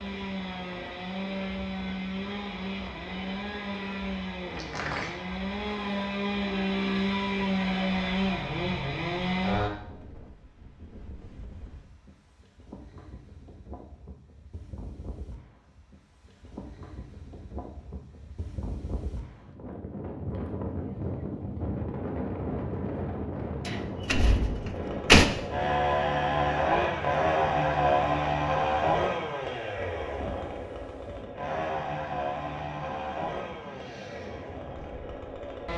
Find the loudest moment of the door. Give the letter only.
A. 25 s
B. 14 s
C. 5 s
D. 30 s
A.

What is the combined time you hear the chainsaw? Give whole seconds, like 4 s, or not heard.
21 s.